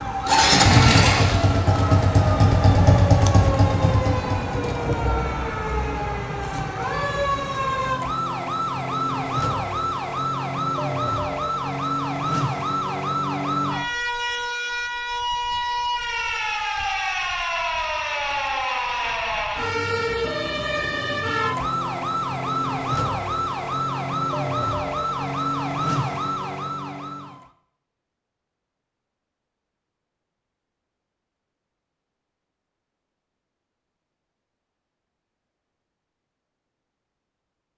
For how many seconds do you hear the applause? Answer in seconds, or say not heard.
not heard.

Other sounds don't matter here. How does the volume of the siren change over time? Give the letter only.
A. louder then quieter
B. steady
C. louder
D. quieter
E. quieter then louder
B.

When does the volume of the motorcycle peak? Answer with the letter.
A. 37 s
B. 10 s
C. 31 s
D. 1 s
D.